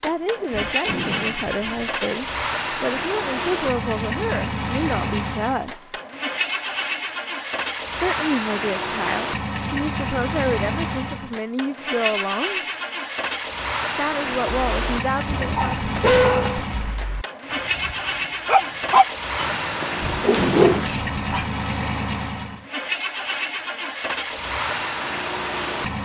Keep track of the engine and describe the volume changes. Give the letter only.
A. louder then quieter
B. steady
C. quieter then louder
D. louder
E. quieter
B.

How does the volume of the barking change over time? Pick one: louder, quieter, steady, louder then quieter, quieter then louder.
quieter then louder.